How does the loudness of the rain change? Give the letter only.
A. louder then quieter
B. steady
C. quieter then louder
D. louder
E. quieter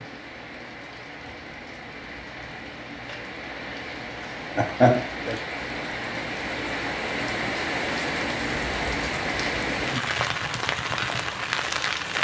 D.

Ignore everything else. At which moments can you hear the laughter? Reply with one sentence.
The laughter can be heard from 4.2 to 4.9 s.